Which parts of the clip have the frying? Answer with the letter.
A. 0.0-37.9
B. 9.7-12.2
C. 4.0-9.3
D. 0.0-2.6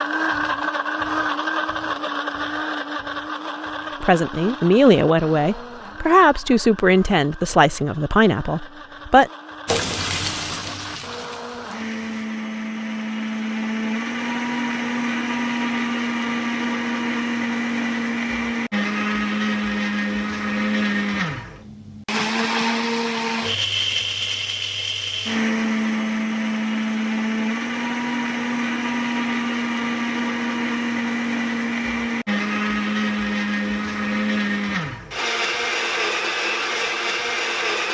B.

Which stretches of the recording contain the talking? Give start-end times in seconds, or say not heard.
4.0-9.3.